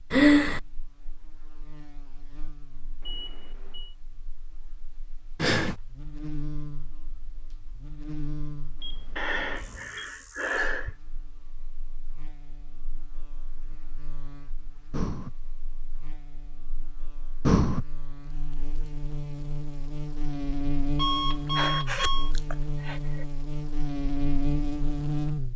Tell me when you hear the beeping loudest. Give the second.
21 s.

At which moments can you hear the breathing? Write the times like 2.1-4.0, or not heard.
0.1-0.6, 5.3-5.8, 9.2-10.9, 14.9-15.3, 17.4-17.9, 21.6-23.2.